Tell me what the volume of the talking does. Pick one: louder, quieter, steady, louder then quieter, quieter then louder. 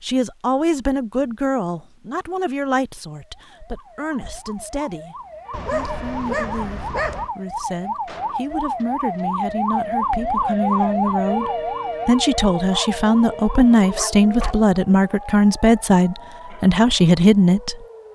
quieter then louder.